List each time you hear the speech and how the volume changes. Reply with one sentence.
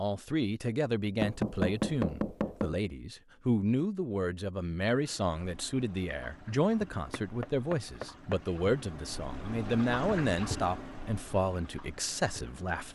The speech can be heard from 0.0 to 12.8 s, at a steady volume.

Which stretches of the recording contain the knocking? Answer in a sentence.
The knocking can be heard from 1.2 to 2.8 s and from 7.1 to 8.4 s.